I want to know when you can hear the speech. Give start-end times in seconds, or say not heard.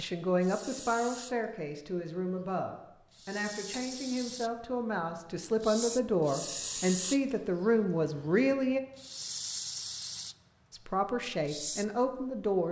0.0-8.8, 10.7-12.6.